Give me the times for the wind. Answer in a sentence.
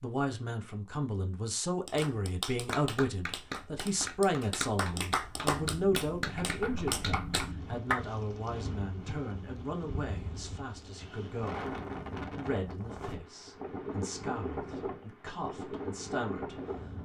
The wind can be heard from 5.6 to 17.0 s.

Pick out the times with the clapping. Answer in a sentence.
You can hear the clapping from 1.8 to 8.0 s.